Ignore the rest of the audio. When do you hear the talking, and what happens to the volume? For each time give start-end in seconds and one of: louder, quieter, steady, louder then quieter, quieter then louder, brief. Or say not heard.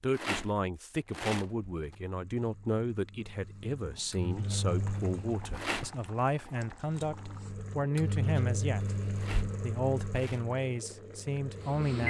0.0-12.0 steady.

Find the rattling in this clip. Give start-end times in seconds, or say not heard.
0.1-1.9, 5.5-6.0, 9.2-10.4.